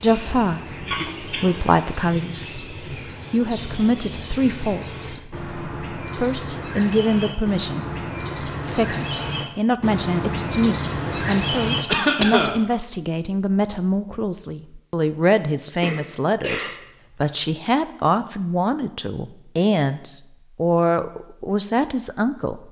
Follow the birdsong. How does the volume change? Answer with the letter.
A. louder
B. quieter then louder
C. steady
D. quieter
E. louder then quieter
A.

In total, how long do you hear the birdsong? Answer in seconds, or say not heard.
12 s.